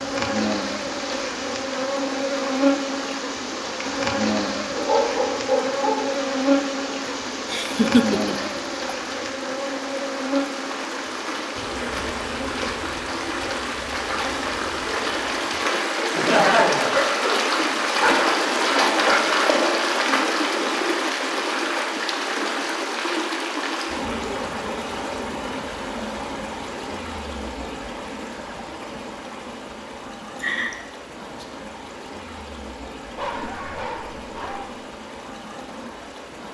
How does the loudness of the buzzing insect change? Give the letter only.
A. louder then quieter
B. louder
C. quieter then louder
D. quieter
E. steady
D.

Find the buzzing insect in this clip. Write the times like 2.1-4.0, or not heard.
0.0-15.7.